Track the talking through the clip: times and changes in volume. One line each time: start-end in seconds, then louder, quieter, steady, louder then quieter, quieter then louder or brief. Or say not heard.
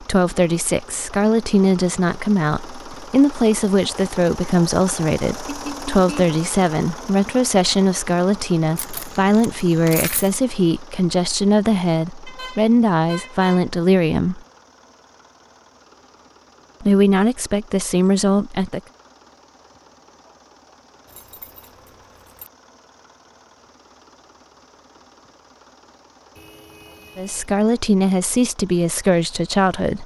0.0-14.4 steady
16.8-18.8 brief
27.1-30.0 brief.